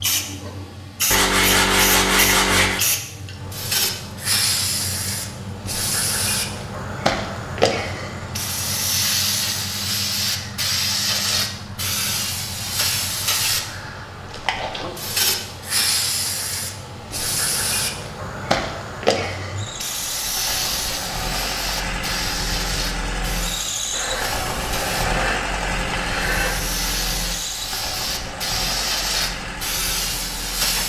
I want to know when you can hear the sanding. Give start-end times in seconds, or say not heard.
1.1-2.9, 23.9-26.6.